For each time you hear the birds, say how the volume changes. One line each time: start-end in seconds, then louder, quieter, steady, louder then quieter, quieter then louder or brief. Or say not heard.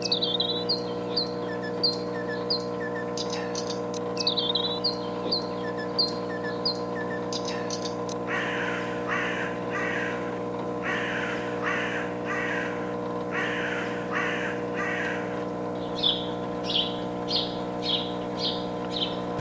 0.0-19.2 steady.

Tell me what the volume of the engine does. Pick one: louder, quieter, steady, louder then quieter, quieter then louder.
steady.